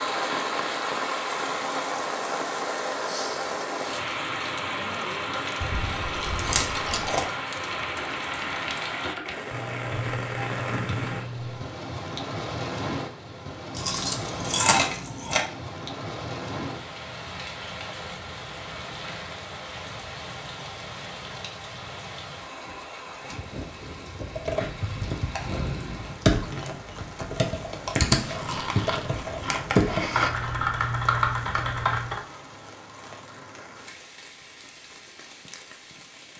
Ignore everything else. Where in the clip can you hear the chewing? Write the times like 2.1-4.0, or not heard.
5.6-7.2, 13.7-15.4, 28.3-30.3.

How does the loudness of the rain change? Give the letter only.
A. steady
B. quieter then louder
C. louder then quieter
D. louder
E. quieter
E.